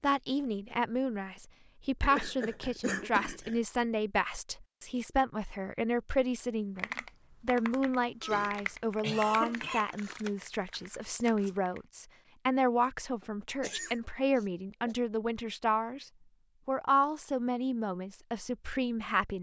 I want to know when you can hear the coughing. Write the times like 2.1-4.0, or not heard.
2.0-3.6, 8.2-9.9, 13.6-14.9.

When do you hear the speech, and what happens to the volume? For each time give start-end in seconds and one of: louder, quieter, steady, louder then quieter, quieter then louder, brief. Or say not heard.
0.0-16.1 steady
16.6-19.3 brief.